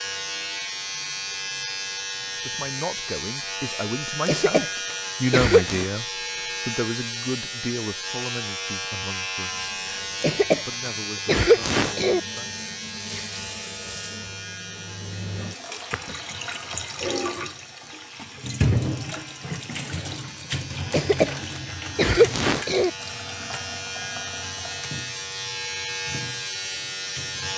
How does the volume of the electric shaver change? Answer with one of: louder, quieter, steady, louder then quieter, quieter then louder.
quieter then louder.